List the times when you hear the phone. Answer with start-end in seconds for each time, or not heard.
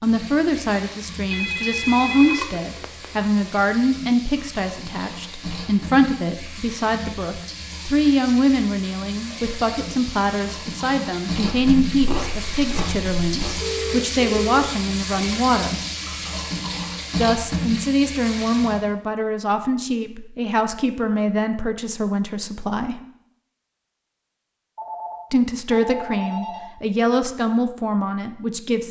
1.3-3.0, 13.6-14.7, 24.8-26.6.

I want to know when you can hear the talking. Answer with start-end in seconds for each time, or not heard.
0.0-15.8, 17.1-23.0, 25.3-28.8.